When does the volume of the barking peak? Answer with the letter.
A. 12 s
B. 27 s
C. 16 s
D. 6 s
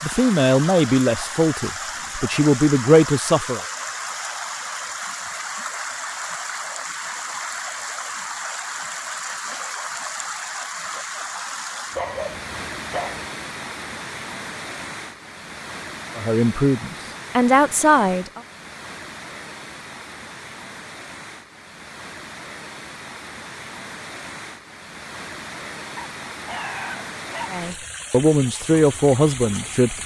A.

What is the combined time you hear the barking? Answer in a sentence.
The barking can be heard for 3 seconds in total.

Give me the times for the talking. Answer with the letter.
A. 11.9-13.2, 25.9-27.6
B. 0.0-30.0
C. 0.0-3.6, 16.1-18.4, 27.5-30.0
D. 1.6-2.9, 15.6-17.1
C.